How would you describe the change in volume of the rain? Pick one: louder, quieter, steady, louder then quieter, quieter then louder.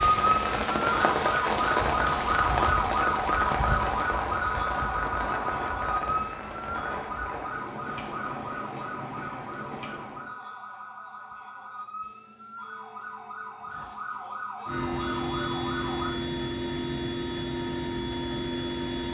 quieter.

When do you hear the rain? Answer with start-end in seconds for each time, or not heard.
0.0-10.3.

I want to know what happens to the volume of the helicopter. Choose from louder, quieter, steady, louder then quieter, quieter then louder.
steady.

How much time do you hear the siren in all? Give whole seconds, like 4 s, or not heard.
16 s.